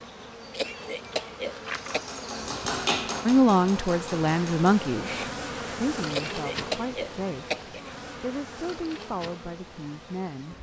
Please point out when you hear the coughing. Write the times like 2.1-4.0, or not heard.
0.5-2.0, 6.1-7.8.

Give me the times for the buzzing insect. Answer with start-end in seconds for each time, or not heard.
0.0-10.5.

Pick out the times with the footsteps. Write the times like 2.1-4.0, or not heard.
not heard.